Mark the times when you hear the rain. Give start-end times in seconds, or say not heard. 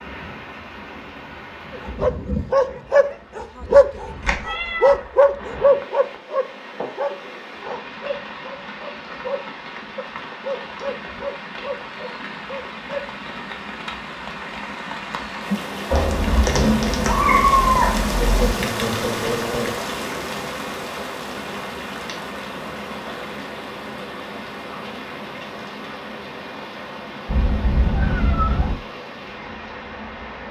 0.0-30.4.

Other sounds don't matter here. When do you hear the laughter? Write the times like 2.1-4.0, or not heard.
2.2-3.1, 18.2-19.8.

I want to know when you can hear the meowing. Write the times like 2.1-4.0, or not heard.
4.2-5.0, 15.9-18.6, 27.2-28.8.